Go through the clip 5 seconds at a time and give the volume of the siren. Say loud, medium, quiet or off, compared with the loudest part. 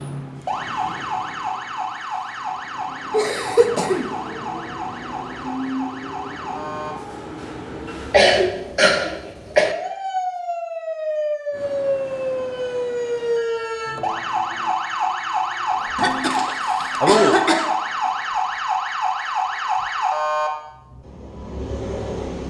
medium, medium, loud, loud, loud.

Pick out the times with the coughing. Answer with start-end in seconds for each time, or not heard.
3.1-4.1, 8.1-9.8, 15.9-17.7.